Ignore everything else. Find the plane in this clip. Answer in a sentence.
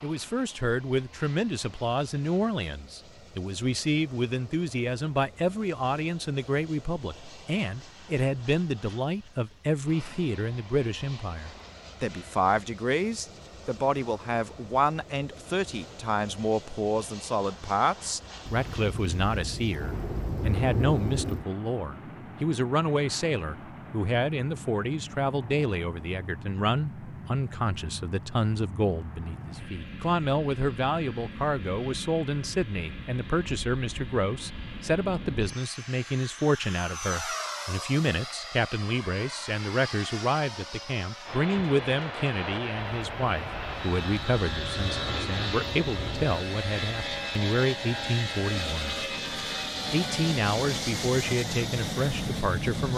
You can hear the plane from 0.0 to 52.9 s.